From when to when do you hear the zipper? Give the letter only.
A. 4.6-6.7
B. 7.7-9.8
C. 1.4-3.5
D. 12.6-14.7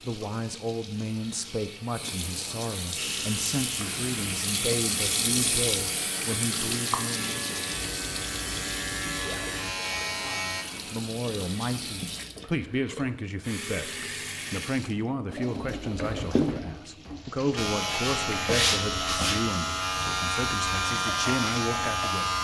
B.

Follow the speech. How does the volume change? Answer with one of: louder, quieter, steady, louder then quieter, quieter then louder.
steady.